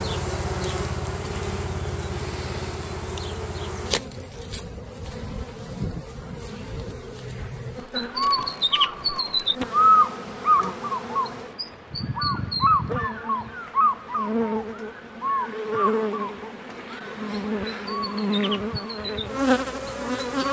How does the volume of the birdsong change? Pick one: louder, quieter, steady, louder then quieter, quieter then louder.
quieter.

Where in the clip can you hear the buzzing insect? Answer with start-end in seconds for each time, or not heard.
0.0-20.4.